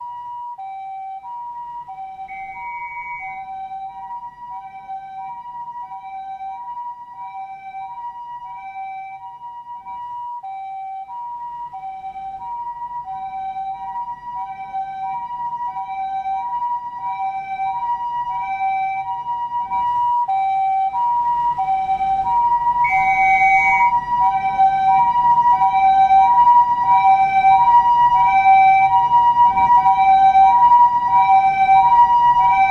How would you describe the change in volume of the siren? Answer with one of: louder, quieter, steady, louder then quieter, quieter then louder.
louder.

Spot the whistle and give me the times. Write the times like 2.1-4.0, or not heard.
2.2-3.5, 22.8-23.9.